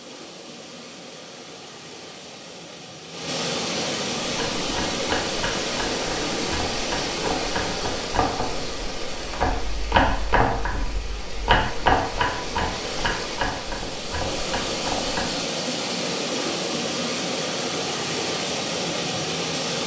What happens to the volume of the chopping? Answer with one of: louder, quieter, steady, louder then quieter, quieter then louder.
louder then quieter.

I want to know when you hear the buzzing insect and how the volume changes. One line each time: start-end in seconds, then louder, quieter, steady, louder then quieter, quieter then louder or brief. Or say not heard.
not heard.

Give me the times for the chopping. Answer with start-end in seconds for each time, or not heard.
4.2-15.3.